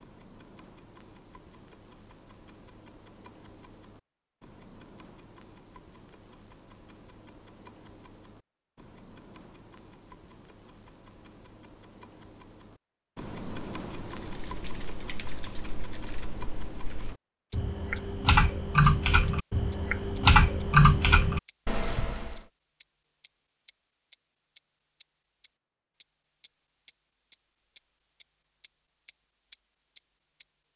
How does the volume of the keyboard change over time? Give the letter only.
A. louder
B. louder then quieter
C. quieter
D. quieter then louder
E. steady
A.